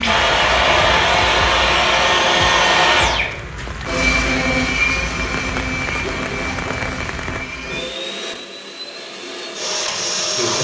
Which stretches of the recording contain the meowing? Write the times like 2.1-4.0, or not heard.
not heard.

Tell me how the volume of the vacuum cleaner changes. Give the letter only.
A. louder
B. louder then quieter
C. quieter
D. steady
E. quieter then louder
C.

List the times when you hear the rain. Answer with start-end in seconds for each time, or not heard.
0.0-7.5.